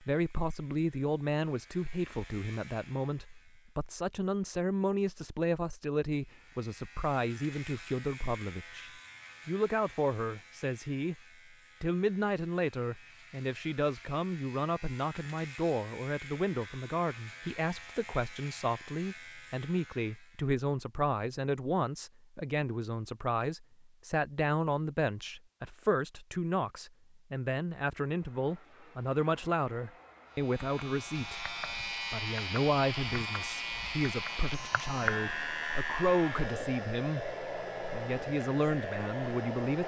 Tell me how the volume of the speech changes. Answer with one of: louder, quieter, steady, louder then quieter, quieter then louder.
steady.